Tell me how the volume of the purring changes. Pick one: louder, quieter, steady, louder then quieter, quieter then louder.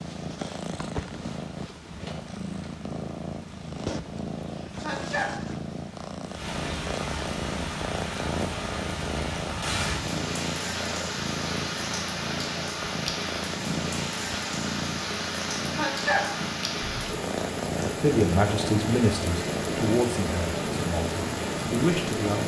steady.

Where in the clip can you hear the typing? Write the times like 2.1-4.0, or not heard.
not heard.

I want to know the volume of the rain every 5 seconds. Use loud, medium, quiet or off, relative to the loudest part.
quiet, loud, loud, loud, loud.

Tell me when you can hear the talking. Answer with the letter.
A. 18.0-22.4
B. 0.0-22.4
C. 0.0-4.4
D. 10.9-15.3
A.